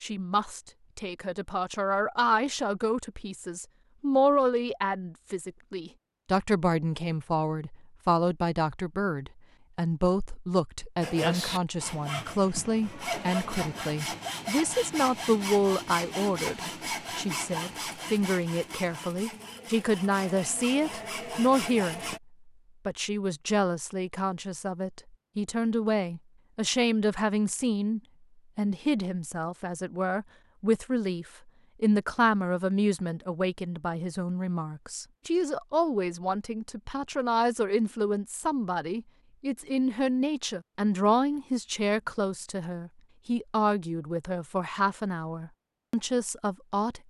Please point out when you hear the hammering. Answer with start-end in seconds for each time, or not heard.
not heard.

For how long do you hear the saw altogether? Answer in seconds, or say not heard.
11 s.